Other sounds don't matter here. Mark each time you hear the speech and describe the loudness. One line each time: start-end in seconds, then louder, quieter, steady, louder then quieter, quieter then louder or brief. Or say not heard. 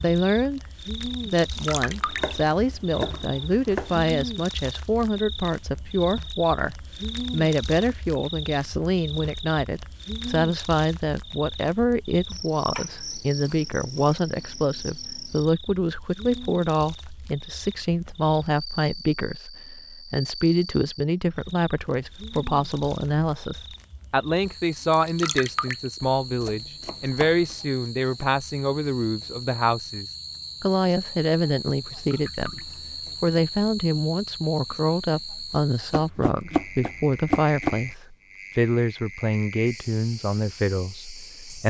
0.0-41.6 steady.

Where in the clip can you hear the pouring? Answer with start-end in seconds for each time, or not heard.
1.5-2.4, 24.9-25.8, 31.9-32.8.